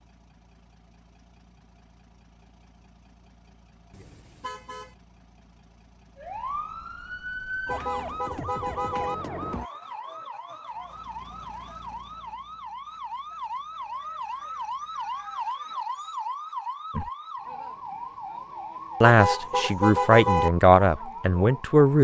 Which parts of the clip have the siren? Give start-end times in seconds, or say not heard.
6.2-21.9.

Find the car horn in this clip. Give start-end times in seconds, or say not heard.
3.9-5.0, 7.7-9.2, 19.0-20.5.